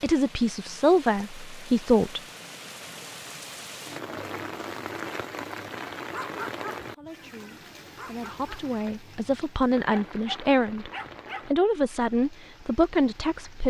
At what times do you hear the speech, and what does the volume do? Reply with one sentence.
The speech can be heard briefly from 0.0 to 2.2 s; and from 6.8 to 13.6 s, getting louder.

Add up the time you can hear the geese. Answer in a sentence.
The geese can't be heard in this clip.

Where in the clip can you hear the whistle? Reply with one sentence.
You can't hear the whistle here.